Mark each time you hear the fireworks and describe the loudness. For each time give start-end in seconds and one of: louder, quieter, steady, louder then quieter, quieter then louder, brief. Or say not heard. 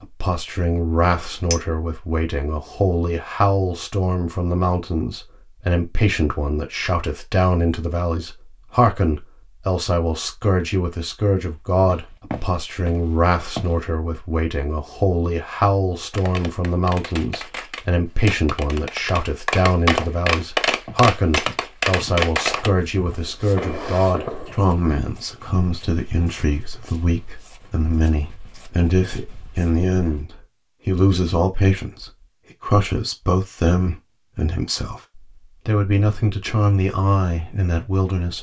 16.1-24.8 louder then quieter.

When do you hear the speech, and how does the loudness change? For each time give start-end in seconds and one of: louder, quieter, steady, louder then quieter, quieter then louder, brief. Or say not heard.
0.0-38.3 steady.